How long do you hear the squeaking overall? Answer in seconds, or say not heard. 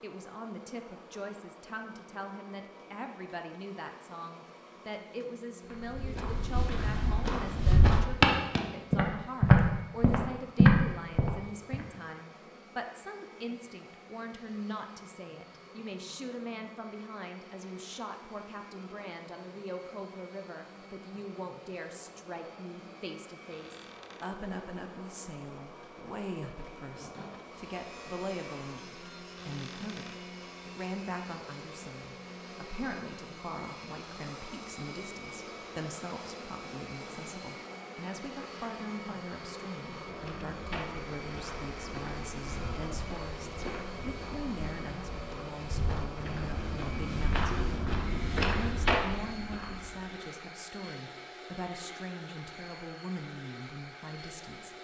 2 s.